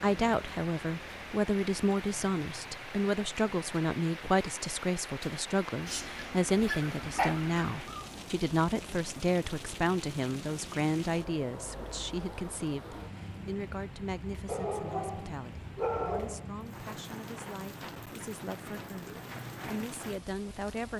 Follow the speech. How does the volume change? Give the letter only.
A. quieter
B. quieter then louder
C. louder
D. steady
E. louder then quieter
A.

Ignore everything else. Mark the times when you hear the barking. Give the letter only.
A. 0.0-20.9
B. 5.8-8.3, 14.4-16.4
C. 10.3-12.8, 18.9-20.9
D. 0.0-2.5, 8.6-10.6
B.